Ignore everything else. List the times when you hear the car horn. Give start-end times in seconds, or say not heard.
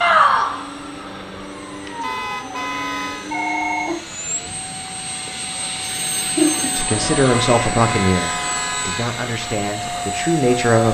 2.0-3.4, 7.2-9.1.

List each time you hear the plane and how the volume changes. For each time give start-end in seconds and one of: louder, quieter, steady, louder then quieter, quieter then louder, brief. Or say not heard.
0.0-10.9 louder.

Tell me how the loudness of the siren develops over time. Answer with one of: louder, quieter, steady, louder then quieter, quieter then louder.
quieter then louder.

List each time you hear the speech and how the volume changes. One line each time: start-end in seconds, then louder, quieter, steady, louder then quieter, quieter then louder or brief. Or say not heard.
6.8-10.9 quieter then louder.